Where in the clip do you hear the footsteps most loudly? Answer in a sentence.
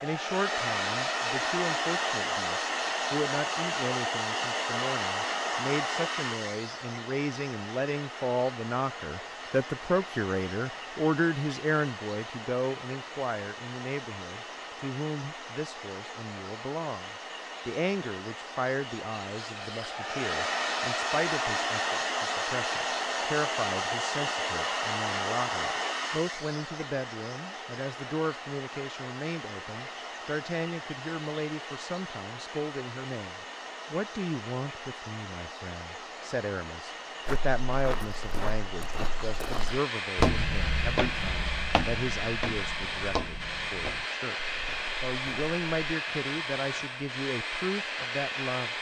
The volume of the footsteps peaks at 40 seconds.